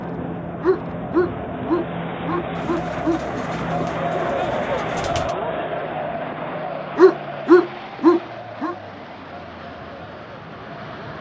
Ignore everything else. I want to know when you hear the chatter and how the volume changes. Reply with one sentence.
You can hear the chatter from 0.0 to 11.1 s, getting louder then quieter.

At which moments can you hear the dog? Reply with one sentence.
You can hear the dog from 0.6 to 3.2 s and from 7.0 to 8.8 s.